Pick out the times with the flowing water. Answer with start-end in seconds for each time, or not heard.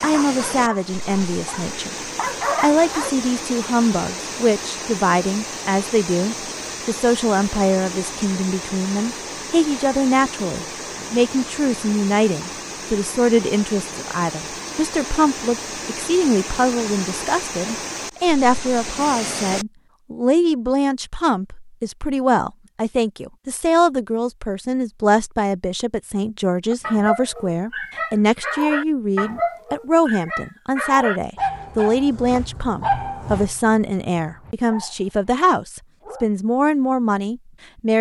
0.0-19.6.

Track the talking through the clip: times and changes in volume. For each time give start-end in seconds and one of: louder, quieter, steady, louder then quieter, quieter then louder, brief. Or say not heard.
0.0-1.9 brief
2.6-37.9 steady.